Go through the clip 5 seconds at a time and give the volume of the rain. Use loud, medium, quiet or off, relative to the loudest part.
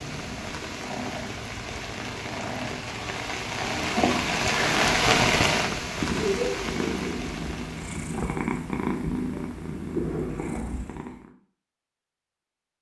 loud, loud, off.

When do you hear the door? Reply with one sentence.
The door can't be heard in this clip.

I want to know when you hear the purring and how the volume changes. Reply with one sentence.
You can hear the purring from 0.0 to 11.3 s, getting louder.